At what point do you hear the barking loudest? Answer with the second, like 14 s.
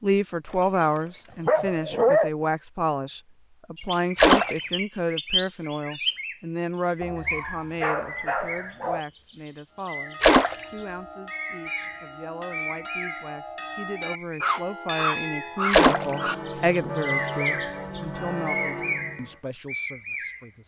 2 s.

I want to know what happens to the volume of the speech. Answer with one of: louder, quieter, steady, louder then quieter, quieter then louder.
quieter then louder.